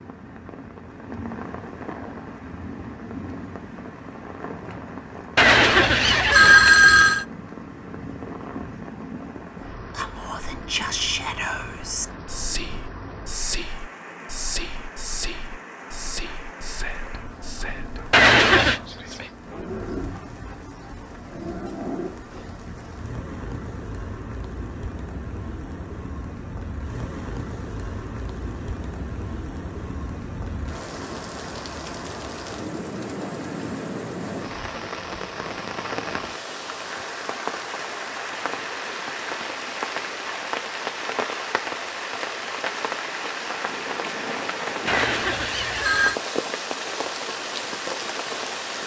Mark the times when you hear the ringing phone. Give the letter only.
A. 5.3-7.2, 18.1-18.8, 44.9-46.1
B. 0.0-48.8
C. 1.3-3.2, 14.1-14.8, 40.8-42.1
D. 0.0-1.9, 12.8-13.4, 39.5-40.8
A.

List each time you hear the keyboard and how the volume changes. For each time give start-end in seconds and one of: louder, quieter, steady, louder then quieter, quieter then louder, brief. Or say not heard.
not heard.